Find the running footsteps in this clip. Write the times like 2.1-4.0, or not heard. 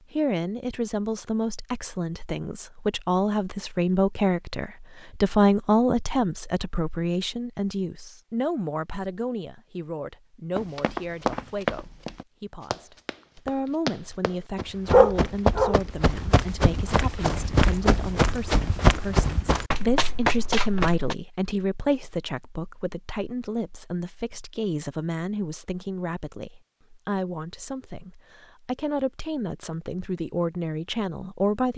10.6-21.1.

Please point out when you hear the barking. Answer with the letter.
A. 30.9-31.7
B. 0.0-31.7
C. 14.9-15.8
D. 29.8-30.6
C.